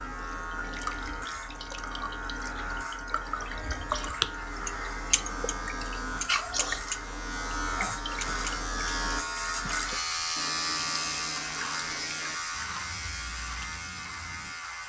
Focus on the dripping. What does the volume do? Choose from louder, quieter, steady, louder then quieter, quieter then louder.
louder then quieter.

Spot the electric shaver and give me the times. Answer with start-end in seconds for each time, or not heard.
0.0-14.8.